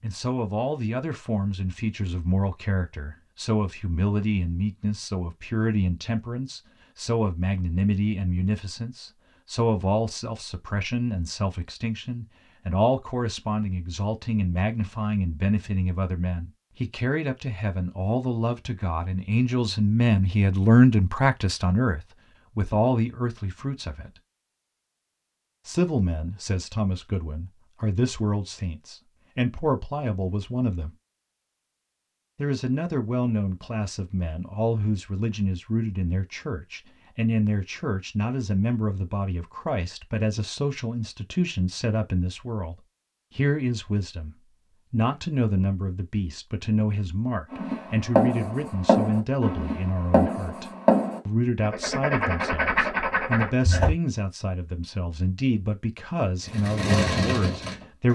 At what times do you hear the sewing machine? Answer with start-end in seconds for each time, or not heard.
56.5-58.1.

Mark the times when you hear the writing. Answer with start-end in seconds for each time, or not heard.
47.5-54.0.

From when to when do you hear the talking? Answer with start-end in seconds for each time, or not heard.
0.0-24.2, 25.6-30.9, 32.4-58.1.